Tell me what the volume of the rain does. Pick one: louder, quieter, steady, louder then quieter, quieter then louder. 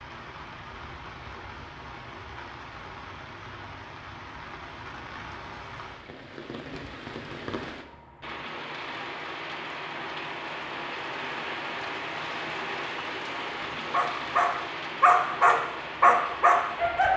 louder.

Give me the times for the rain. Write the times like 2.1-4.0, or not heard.
0.0-17.1.